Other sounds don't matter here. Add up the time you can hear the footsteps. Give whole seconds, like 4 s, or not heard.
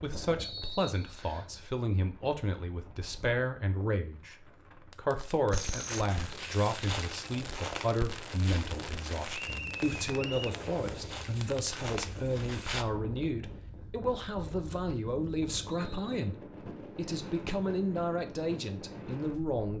7 s.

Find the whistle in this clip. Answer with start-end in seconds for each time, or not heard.
0.3-1.5, 9.3-10.6, 15.7-16.1.